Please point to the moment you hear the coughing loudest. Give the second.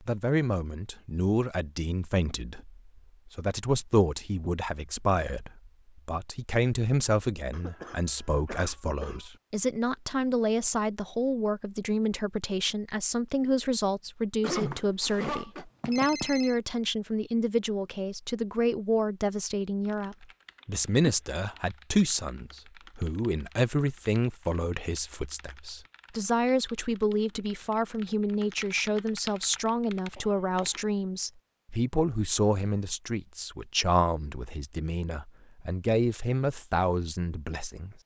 15 s.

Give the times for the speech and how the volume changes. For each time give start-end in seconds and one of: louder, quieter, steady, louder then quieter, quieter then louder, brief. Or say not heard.
0.0-38.0 steady.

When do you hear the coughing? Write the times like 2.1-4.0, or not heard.
7.5-9.2, 14.4-15.7, 30.1-30.8.